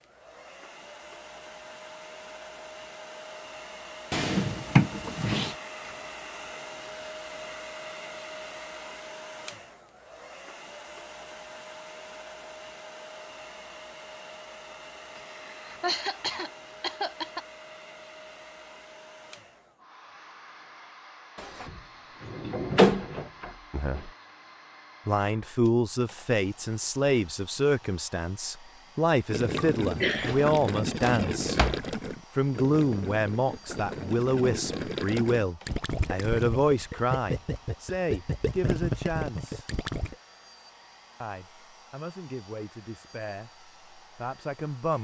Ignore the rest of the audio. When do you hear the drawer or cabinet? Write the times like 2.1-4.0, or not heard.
4.1-5.5, 21.4-24.1, 30.2-31.9.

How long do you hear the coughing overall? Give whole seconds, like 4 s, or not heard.
3 s.